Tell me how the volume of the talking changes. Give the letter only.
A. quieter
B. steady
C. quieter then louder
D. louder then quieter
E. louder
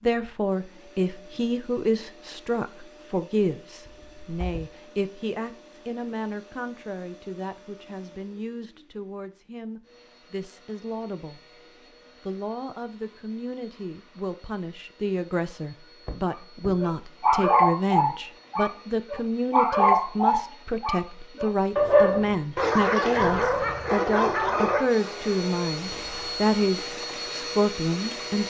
C.